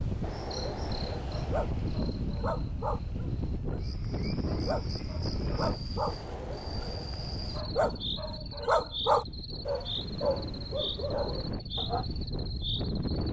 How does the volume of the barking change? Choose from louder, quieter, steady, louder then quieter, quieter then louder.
louder then quieter.